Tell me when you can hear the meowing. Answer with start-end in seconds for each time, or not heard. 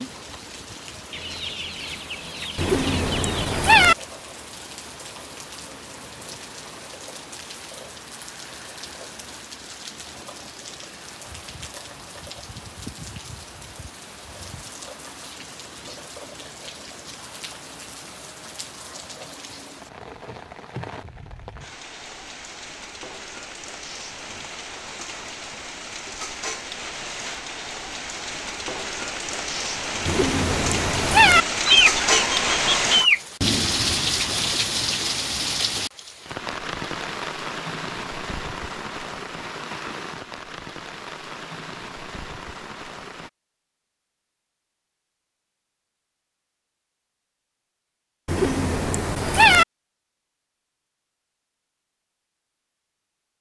2.5-4.0, 30.1-31.4, 48.2-49.6.